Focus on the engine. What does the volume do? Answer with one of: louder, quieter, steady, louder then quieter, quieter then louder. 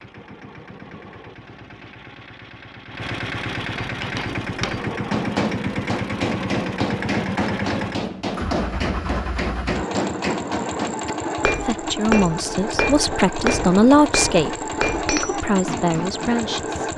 louder.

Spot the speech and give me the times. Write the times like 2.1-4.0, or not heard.
11.6-16.9.